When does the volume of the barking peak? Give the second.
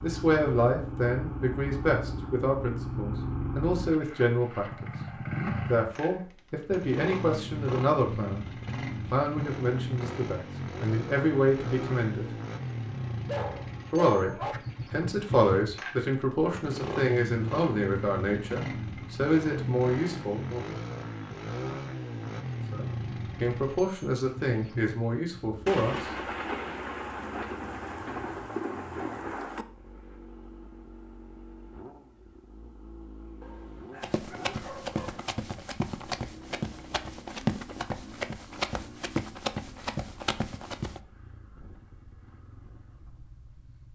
14 s.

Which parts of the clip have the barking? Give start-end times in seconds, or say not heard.
13.2-14.6, 33.4-35.2.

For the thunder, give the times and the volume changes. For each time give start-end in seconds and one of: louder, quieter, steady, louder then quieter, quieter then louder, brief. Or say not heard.
25.6-29.6 steady.